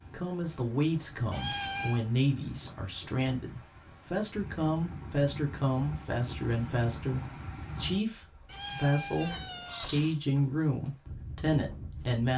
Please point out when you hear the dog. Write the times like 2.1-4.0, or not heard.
not heard.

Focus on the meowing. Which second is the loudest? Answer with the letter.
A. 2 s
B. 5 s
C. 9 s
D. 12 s
A.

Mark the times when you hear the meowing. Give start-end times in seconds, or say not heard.
1.3-2.0, 8.4-10.2.